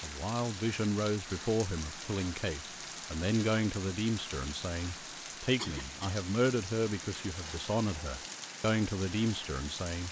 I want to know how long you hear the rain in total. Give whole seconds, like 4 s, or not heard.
10 s.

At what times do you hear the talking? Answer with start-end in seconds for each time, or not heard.
0.0-10.0.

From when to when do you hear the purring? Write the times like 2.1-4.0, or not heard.
not heard.